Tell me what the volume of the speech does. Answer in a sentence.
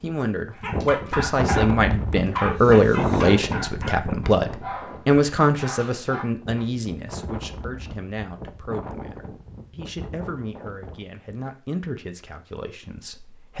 The volume of the speech goes down.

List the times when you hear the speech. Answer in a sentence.
The speech can be heard from 0.0 to 13.5 s.